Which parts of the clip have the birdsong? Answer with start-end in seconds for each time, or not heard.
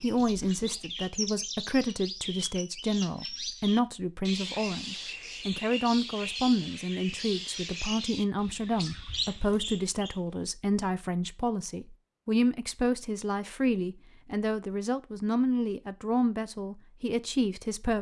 0.0-10.2.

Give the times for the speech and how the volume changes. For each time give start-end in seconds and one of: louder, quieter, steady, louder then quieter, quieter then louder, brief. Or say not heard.
0.0-17.9 steady.